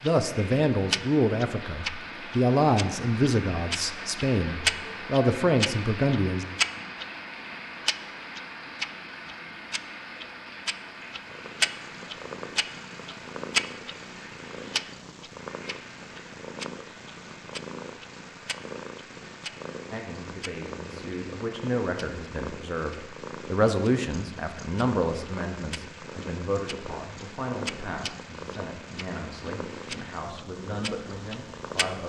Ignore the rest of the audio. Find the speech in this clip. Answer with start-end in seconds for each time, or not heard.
0.0-6.5, 19.9-32.0.